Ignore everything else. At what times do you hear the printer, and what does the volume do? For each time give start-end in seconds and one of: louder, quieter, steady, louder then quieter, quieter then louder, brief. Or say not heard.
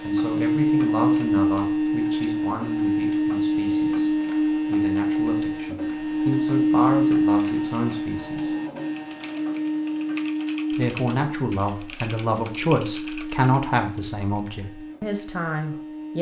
0.0-16.1 quieter.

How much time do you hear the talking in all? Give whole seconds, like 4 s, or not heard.
14 s.